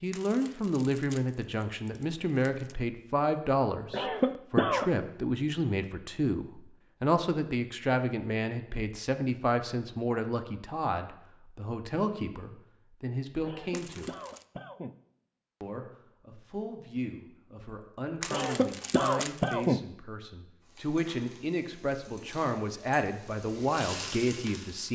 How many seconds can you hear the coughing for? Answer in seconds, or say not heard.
4 s.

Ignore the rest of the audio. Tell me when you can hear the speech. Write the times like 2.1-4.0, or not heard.
0.0-14.2, 15.6-24.9.